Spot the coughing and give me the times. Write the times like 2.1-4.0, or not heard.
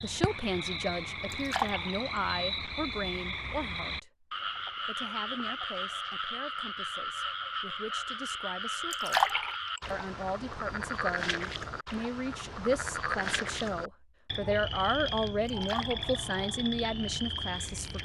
not heard.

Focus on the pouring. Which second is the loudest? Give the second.
9 s.